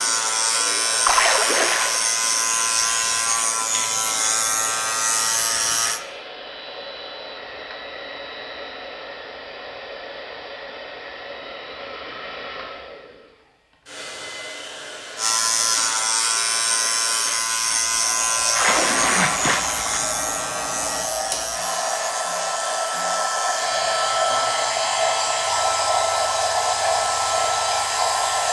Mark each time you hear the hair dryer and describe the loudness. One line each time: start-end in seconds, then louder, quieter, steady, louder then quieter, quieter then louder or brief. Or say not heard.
0.0-28.4 louder.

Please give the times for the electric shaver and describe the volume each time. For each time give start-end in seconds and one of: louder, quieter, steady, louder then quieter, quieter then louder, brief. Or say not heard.
0.0-6.0 steady
15.2-28.4 quieter.